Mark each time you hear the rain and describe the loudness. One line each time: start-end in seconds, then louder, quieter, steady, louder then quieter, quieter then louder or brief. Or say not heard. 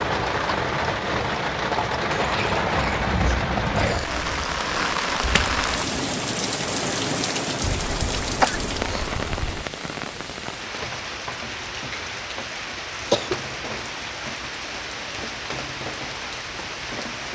0.0-17.3 quieter.